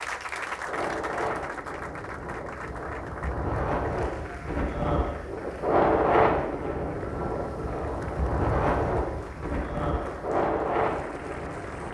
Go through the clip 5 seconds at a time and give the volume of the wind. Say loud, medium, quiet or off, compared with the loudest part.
medium, loud, loud.